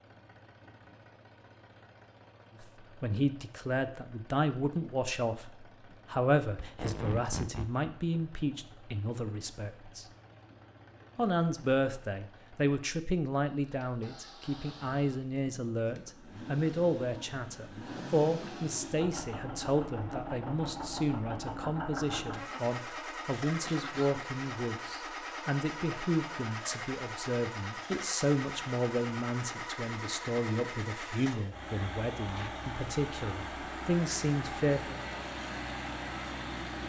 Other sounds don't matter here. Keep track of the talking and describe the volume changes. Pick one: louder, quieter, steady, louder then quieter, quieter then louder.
steady.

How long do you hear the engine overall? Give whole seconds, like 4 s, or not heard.
37 s.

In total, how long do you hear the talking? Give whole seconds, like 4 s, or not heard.
31 s.